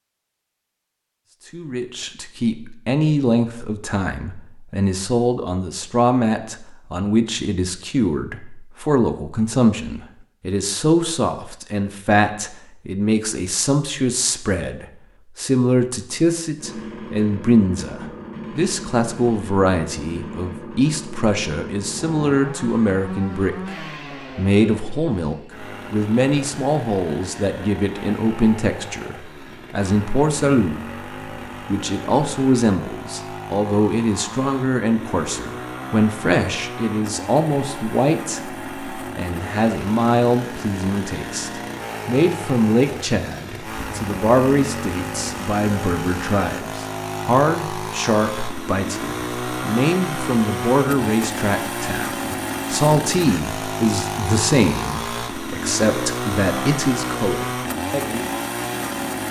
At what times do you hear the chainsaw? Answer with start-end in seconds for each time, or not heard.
16.6-59.2.